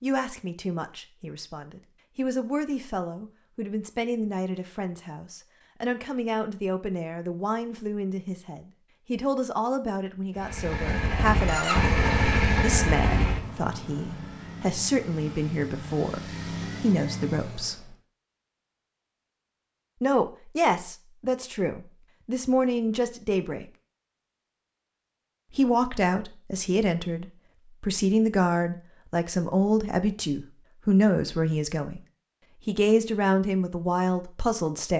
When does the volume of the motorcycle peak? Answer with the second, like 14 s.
12 s.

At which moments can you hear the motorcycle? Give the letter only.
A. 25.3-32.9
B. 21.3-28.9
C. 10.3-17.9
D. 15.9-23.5
C.